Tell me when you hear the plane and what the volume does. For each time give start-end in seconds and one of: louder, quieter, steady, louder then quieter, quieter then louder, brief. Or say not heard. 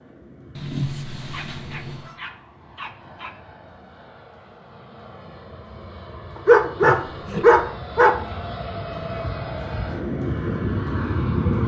0.0-11.6 louder.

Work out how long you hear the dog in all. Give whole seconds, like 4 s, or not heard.
4 s.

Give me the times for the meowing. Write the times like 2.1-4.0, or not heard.
0.6-2.1, 6.8-7.7.